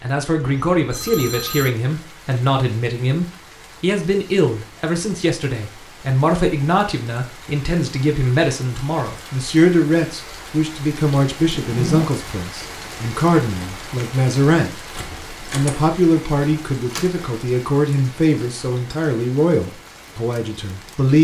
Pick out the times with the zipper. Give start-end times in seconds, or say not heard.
11.6-12.2.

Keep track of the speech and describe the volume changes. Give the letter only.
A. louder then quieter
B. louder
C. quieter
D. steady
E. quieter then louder
D.